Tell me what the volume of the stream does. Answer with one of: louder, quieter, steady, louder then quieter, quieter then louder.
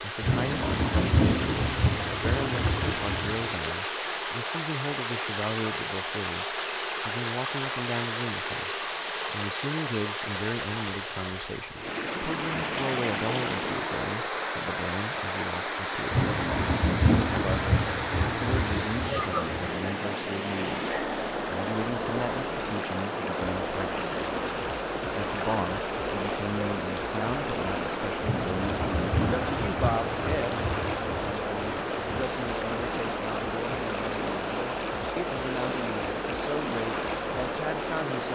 steady.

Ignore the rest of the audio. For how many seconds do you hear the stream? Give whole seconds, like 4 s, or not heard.
38 s.